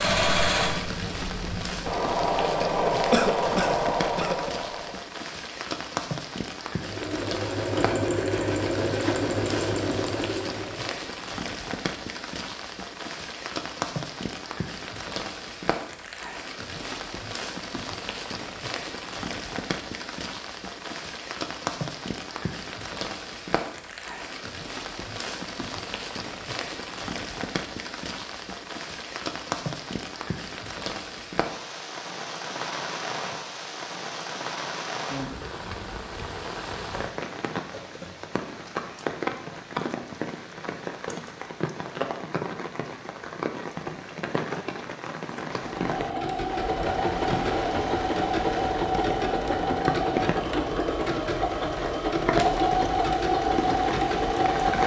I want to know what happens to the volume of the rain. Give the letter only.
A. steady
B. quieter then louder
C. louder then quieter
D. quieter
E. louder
A.